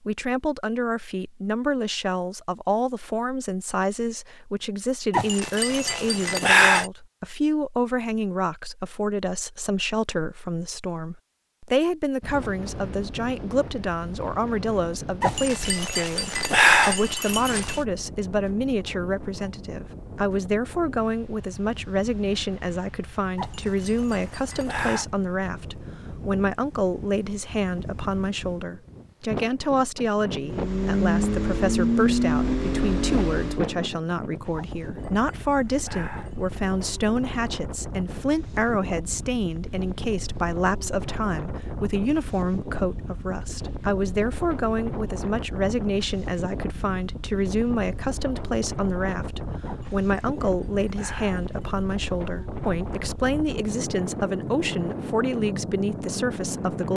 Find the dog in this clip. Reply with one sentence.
The dog can be heard from 5.1 to 6.9 s, from 15.2 to 17.8 s, from 23.4 to 25.1 s, from 34.5 to 37.1 s and from 49.6 to 51.9 s.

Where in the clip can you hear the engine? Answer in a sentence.
You can hear the engine from 30.4 to 33.8 s.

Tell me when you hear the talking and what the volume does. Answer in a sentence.
You can hear the talking from 0.0 to 56.9 s, at a steady volume.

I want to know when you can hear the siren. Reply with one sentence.
The siren can't be heard in this clip.